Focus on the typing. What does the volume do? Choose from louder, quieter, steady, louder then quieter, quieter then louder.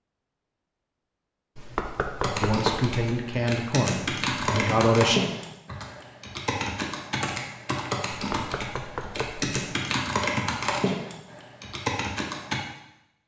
steady.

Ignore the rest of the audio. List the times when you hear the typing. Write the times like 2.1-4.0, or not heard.
2.2-12.6.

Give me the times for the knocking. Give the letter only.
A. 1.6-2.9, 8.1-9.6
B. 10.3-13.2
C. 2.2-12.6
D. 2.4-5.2
A.